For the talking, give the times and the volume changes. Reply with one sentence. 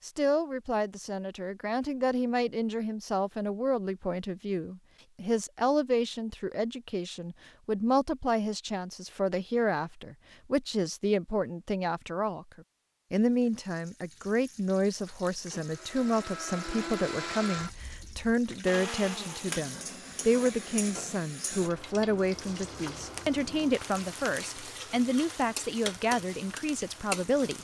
You can hear the talking from 0.0 to 27.5 s, at a steady volume.